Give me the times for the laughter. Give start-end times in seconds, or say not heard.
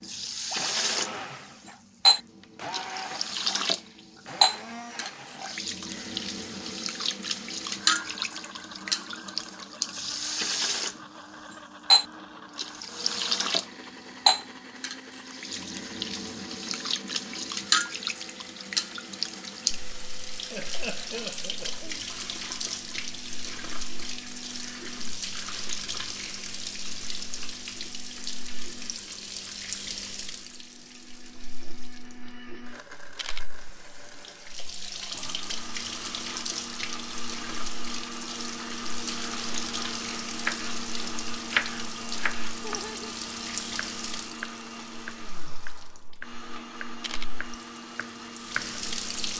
20.5-22.0, 42.6-43.1.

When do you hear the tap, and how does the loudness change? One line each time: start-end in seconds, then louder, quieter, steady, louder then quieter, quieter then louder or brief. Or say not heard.
0.0-49.3 quieter.